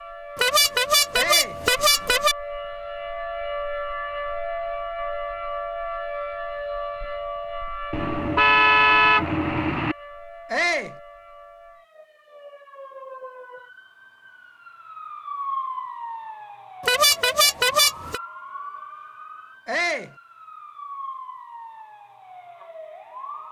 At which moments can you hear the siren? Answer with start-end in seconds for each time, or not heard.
0.0-23.4.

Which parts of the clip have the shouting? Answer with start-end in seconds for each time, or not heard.
1.1-1.6, 10.5-10.9, 19.6-20.1.